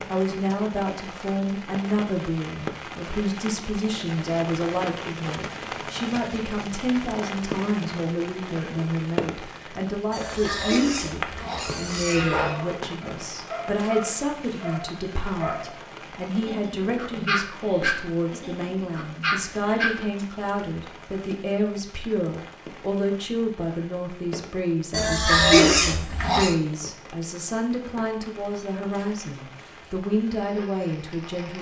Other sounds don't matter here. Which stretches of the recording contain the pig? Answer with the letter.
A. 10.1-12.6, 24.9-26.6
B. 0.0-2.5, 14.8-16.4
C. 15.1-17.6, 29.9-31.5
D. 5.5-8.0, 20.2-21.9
A.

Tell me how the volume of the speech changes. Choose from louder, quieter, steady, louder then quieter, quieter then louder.
steady.